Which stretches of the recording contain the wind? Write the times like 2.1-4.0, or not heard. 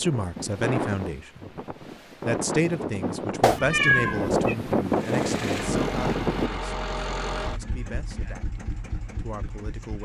0.0-6.5.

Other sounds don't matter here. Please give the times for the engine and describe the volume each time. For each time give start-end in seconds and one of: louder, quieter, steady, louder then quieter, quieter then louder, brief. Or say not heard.
4.8-9.9 quieter.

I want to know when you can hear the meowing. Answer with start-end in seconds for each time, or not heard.
3.4-4.5.